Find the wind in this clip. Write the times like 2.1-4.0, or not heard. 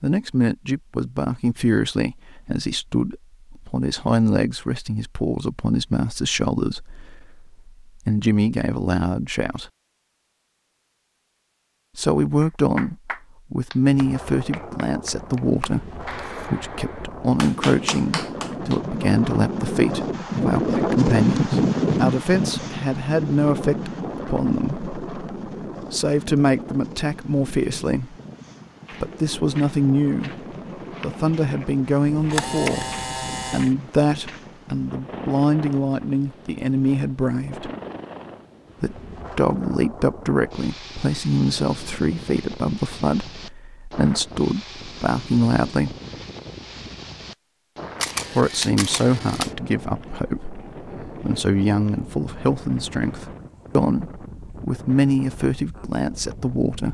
13.8-56.9.